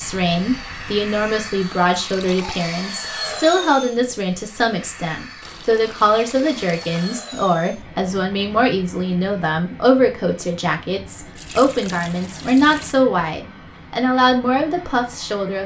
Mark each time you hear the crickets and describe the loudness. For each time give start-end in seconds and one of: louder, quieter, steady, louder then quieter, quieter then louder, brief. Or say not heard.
not heard.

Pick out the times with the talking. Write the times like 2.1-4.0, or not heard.
0.0-15.6.